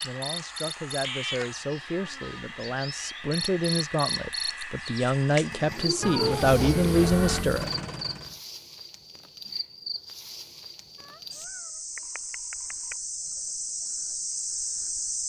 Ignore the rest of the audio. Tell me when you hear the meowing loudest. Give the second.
6 s.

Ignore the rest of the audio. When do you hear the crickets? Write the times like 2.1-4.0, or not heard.
0.0-15.2.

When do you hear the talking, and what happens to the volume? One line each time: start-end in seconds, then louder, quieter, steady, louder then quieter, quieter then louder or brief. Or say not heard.
0.0-7.7 louder.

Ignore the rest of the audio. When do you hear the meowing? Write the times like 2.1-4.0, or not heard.
1.0-2.5, 6.0-7.5, 11.1-12.9.